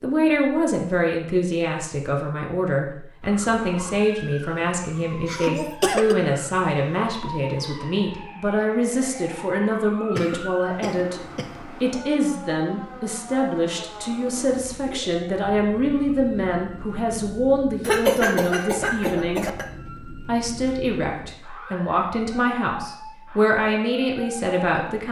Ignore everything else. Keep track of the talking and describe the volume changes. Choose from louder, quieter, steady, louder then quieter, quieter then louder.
steady.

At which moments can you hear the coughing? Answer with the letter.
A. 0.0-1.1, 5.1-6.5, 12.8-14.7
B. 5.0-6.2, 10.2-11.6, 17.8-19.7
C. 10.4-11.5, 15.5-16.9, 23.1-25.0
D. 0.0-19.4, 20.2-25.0
B.